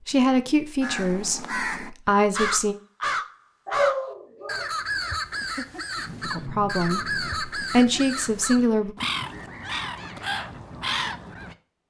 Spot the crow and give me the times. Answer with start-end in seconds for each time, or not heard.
0.8-11.6.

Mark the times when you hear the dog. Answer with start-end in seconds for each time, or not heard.
3.6-4.7.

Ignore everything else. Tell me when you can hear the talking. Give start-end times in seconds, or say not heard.
0.1-2.8, 6.2-8.9.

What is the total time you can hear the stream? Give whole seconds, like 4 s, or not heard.
not heard.